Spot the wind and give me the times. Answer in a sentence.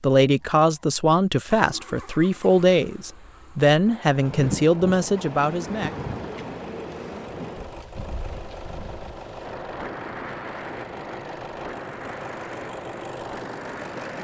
The wind can be heard from 4.1 to 14.1 s.